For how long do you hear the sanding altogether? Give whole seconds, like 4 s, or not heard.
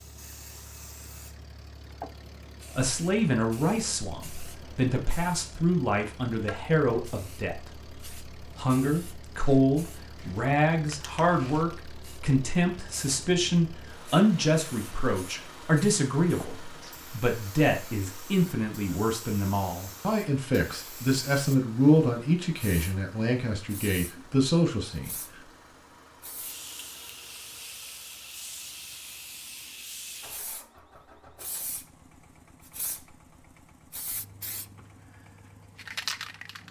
not heard.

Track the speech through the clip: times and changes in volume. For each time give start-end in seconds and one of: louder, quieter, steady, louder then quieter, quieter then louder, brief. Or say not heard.
2.8-25.1 steady.